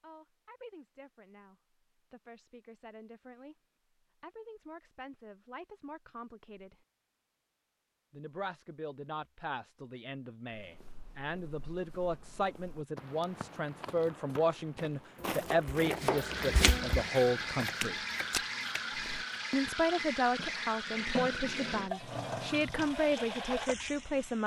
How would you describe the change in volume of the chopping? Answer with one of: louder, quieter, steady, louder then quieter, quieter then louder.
louder then quieter.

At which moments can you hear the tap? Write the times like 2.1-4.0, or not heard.
15.9-24.4.